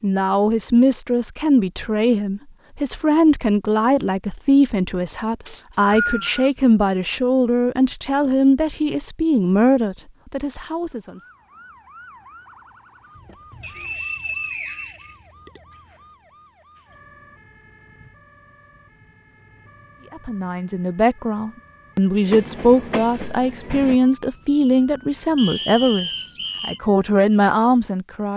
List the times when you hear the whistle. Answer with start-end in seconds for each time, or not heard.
5.5-6.5, 13.6-15.6, 25.4-26.8.